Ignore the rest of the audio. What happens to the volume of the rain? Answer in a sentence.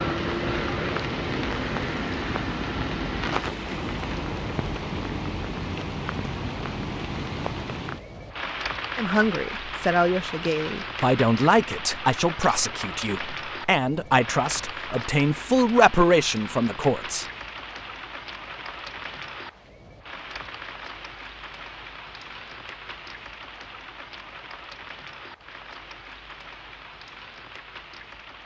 The volume of the rain goes down.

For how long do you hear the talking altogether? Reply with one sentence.
The talking can be heard for 8 seconds in total.